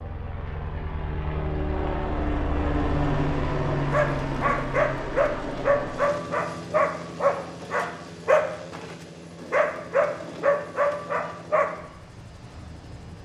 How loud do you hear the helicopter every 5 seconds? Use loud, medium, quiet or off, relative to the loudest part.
loud, medium, quiet.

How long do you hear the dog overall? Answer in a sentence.
The dog can be heard for 8 seconds in total.